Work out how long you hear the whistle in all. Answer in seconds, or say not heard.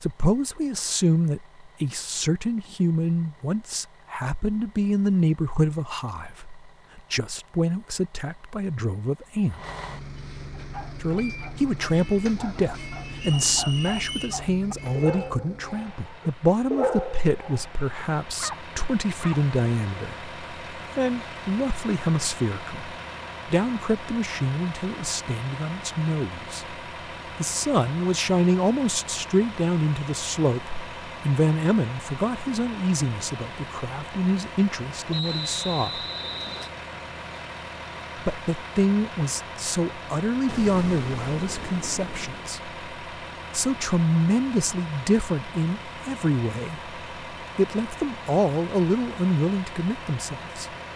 3 s.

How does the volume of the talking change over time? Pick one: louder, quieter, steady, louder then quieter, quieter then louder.
steady.